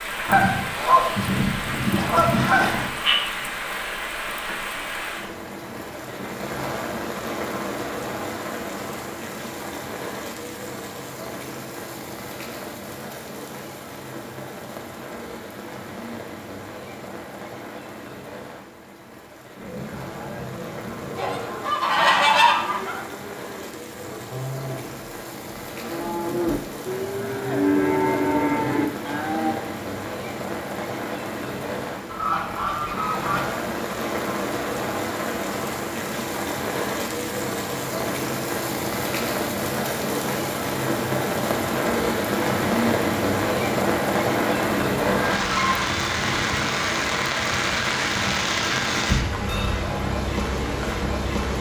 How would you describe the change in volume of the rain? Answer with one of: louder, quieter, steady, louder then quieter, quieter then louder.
quieter then louder.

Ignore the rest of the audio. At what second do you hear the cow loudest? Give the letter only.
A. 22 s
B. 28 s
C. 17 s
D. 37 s
B.